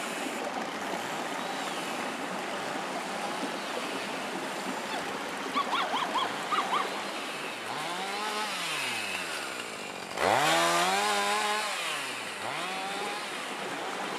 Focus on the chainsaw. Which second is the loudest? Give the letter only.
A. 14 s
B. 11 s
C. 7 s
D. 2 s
B.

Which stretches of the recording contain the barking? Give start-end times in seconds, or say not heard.
4.8-6.9.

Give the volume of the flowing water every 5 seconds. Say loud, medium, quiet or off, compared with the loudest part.
loud, loud, medium.